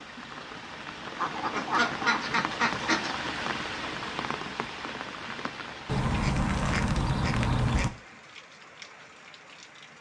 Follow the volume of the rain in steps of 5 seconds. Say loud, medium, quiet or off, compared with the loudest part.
loud, medium.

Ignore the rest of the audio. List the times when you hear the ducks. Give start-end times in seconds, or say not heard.
1.1-3.1, 5.8-7.9.